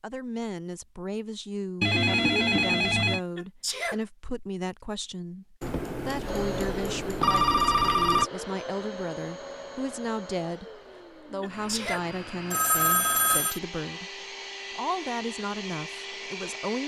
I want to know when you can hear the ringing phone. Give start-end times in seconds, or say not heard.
1.8-3.2, 5.6-8.3, 12.5-13.6.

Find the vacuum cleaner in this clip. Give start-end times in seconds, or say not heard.
6.2-16.8.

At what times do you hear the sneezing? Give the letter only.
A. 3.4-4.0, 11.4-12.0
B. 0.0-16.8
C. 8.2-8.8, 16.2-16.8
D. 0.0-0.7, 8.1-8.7
A.